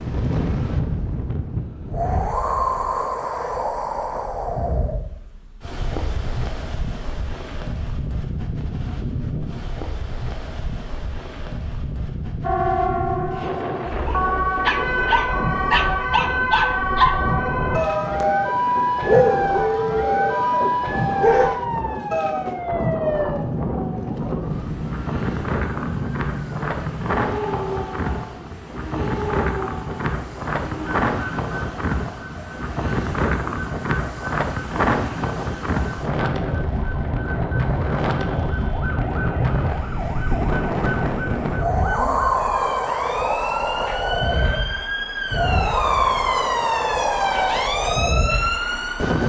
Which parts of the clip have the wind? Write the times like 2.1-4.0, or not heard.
0.0-49.2.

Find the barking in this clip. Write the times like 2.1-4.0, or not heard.
14.1-22.5.